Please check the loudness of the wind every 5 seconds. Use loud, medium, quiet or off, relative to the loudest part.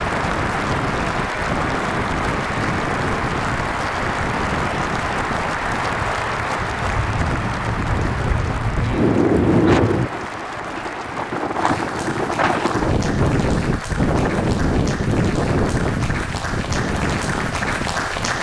medium, loud, loud, loud.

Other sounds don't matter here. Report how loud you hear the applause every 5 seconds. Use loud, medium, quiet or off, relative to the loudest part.
loud, loud, medium, loud.